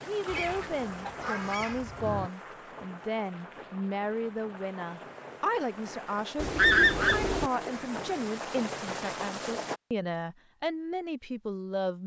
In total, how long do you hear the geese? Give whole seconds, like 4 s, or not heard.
3 s.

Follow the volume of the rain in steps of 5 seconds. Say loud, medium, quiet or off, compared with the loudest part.
medium, loud, off.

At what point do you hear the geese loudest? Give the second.
7 s.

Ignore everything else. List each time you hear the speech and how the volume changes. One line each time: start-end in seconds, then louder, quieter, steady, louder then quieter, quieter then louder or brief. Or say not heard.
0.0-12.0 steady.